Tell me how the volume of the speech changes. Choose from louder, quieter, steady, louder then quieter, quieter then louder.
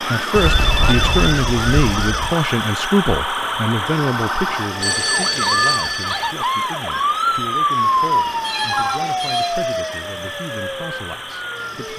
quieter.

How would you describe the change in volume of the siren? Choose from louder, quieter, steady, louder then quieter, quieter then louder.
louder then quieter.